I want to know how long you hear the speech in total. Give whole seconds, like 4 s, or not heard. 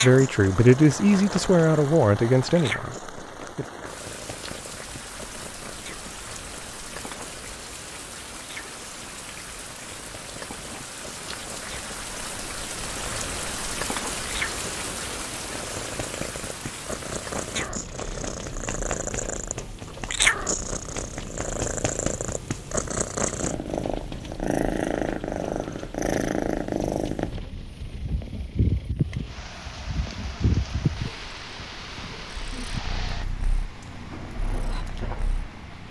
4 s.